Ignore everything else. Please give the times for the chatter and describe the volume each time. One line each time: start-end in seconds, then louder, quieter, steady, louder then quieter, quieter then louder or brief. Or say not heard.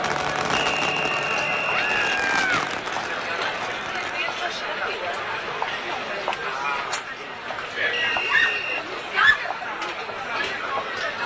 0.0-11.2 steady.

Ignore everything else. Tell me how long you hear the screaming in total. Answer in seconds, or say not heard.
2 s.